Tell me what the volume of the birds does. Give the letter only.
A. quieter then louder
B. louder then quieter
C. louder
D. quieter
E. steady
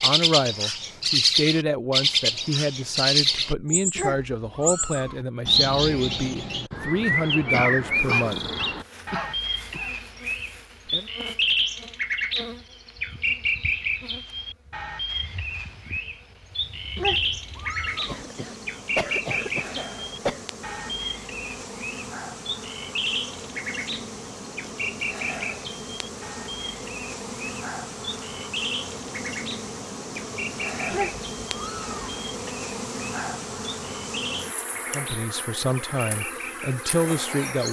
D.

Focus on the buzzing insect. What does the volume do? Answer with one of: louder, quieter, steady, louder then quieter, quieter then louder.
louder.